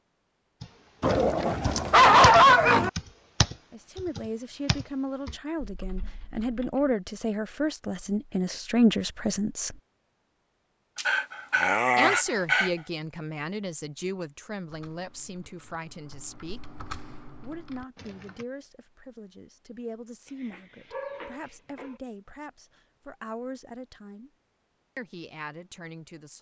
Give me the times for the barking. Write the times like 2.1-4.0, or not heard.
1.0-2.9, 10.9-12.7, 20.2-22.0.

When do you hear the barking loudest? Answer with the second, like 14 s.
2 s.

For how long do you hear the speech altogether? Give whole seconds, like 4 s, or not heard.
19 s.